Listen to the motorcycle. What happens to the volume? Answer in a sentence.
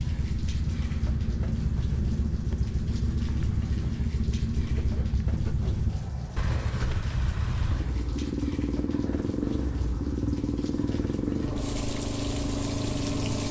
The volume of the motorcycle stays about the same.